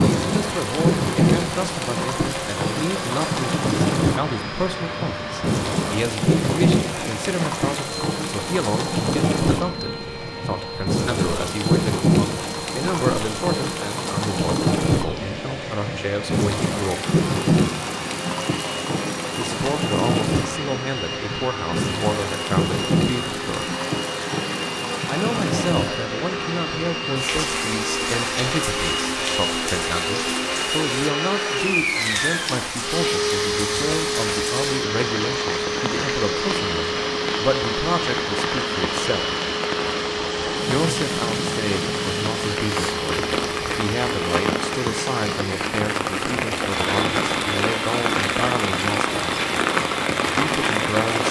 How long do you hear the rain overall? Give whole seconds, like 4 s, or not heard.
51 s.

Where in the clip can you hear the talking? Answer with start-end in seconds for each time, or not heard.
0.0-17.1, 19.4-23.8, 25.1-39.2, 40.6-49.4, 50.4-51.2.